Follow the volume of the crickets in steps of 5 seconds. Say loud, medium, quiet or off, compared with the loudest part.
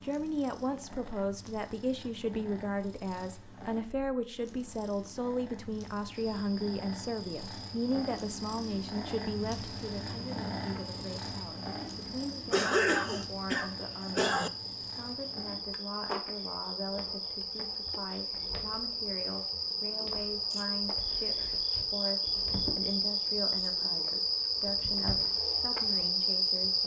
off, quiet, quiet, medium, loud, loud.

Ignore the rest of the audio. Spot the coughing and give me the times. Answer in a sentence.
You can hear the coughing from 12.5 to 14.5 s.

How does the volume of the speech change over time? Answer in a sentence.
The volume of the speech goes down.